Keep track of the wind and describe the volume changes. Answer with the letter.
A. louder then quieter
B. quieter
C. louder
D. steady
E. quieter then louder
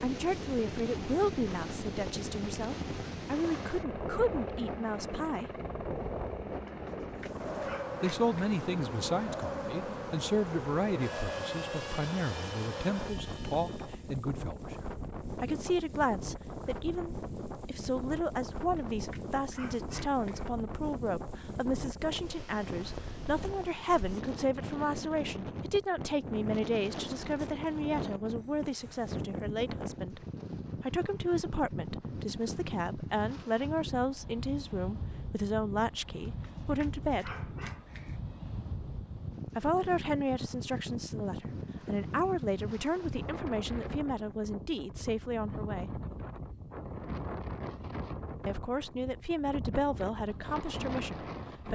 D.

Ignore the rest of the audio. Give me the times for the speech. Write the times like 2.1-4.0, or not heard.
0.0-5.5, 8.0-30.2, 30.8-37.5, 39.5-46.0, 48.5-51.7.